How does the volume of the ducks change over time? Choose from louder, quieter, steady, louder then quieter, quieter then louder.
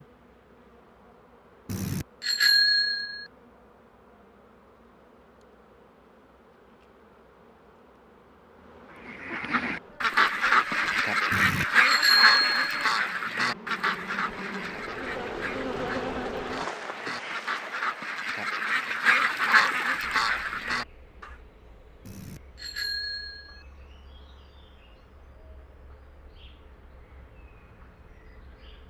quieter then louder.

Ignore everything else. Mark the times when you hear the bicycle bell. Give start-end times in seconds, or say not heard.
1.6-3.2, 11.3-12.7, 22.1-23.6.